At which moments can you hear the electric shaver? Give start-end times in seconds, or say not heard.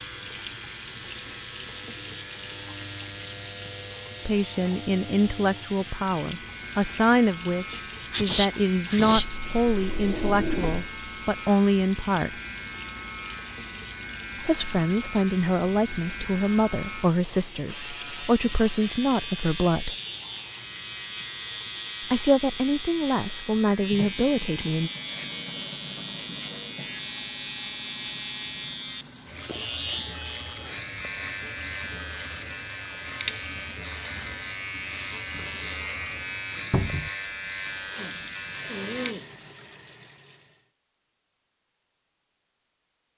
0.0-39.1.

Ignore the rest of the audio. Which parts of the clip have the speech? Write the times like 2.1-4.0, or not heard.
4.2-12.3, 14.4-19.9, 22.1-24.9.